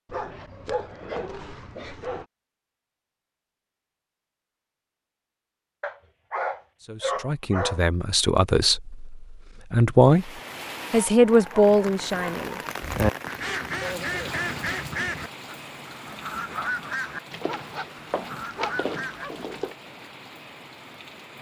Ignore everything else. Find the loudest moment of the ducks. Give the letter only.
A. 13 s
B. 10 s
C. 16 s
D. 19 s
A.